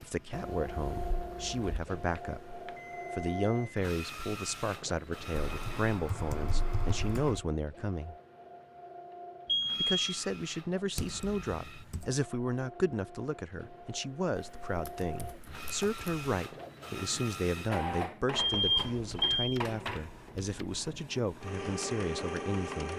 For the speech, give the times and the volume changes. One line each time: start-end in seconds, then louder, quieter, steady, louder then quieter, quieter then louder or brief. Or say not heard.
0.0-8.2 steady
9.8-22.9 steady.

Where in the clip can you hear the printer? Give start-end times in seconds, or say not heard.
0.0-22.9.